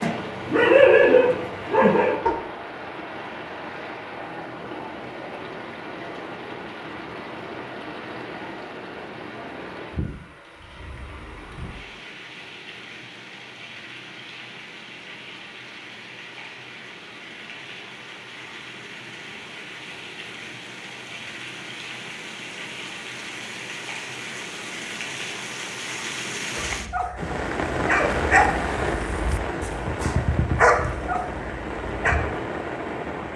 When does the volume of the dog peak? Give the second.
1 s.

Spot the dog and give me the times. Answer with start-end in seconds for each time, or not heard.
0.0-2.4, 26.6-32.2.